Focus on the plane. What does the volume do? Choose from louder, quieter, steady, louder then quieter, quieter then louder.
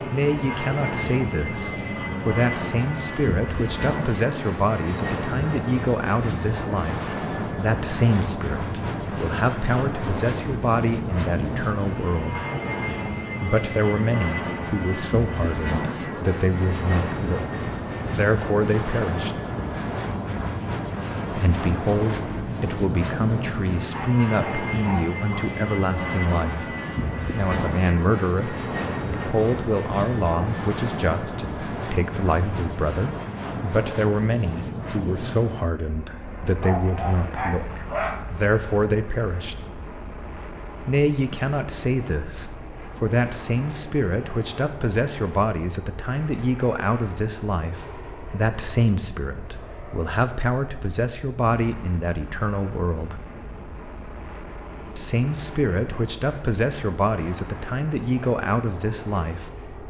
quieter.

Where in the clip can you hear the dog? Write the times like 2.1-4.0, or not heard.
23.9-25.4, 36.6-38.1.